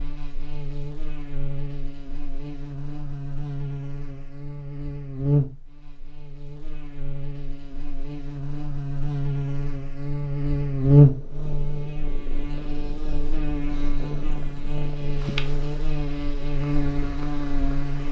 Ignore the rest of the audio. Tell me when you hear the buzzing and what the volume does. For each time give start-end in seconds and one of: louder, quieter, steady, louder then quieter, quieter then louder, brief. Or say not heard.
0.0-18.0 louder then quieter.